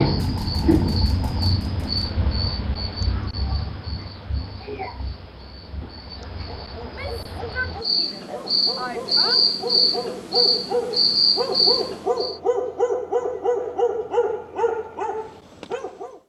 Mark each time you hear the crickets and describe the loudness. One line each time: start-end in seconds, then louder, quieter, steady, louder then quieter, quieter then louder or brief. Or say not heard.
0.0-12.4 quieter then louder.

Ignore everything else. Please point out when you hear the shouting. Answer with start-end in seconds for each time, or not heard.
6.8-9.4.